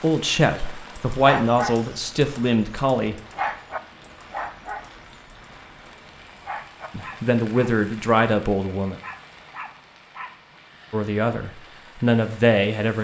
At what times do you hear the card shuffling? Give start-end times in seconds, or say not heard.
not heard.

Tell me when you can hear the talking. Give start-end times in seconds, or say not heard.
0.0-3.1, 7.0-9.0, 10.9-12.9.